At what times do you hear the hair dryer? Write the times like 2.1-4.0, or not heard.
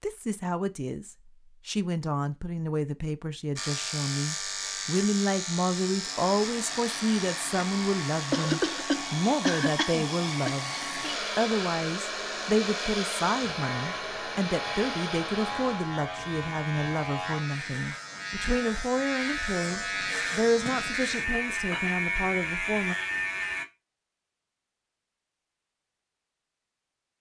6.0-15.9.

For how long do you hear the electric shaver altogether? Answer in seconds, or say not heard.
20 s.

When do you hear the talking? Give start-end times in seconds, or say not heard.
0.0-10.8, 11.3-22.9.